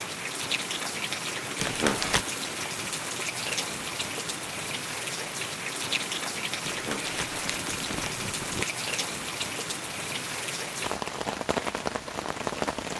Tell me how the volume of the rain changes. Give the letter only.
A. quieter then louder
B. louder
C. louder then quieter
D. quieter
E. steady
E.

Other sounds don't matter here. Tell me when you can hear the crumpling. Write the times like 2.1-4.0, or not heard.
1.6-2.2, 6.6-8.7.